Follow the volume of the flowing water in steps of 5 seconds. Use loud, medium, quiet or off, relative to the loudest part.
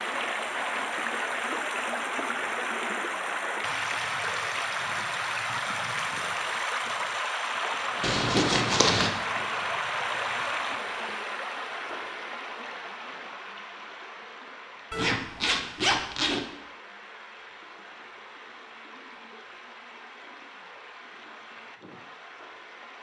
loud, loud, medium, quiet, quiet.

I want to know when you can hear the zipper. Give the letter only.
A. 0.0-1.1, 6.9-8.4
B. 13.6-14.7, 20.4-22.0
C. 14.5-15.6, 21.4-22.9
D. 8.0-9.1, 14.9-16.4
D.